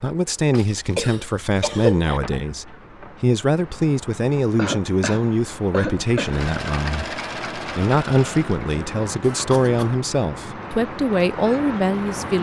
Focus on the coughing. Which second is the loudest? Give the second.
2 s.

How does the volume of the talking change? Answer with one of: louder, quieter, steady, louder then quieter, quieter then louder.
steady.